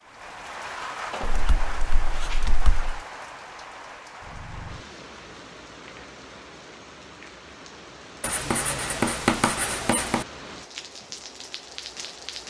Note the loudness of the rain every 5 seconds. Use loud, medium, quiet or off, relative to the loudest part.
loud, medium, loud.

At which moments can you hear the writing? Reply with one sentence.
The writing can be heard from 1.2 to 3.0 s and from 8.2 to 10.2 s.